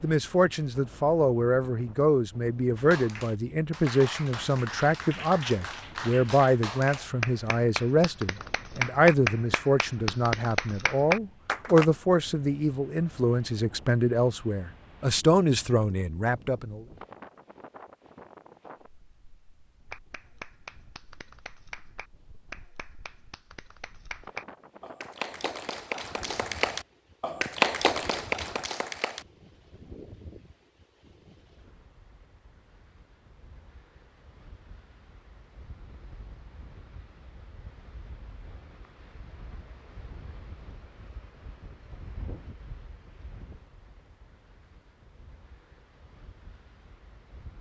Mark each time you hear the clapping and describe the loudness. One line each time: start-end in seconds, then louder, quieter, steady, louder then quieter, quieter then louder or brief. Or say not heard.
2.8-11.8 louder
19.9-29.2 louder.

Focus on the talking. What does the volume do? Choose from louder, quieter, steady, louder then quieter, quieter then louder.
steady.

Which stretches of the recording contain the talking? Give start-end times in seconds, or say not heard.
0.0-16.9.